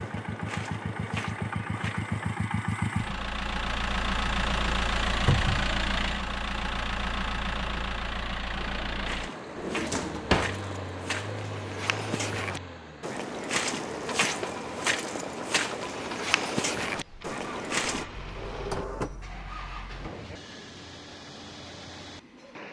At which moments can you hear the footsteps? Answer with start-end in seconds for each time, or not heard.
0.0-2.4, 8.6-18.1.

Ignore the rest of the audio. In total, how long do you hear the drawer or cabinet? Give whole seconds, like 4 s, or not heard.
3 s.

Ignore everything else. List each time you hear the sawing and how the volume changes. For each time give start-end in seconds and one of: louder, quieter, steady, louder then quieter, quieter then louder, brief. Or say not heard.
not heard.